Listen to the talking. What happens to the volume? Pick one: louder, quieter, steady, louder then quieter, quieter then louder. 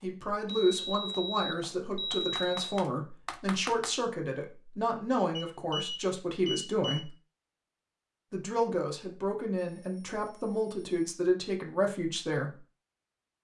steady.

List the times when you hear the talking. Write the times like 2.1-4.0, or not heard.
0.0-7.1, 8.3-12.6.